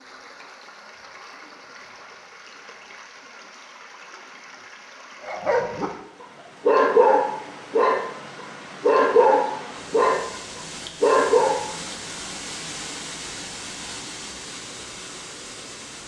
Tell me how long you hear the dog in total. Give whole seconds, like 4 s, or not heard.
5 s.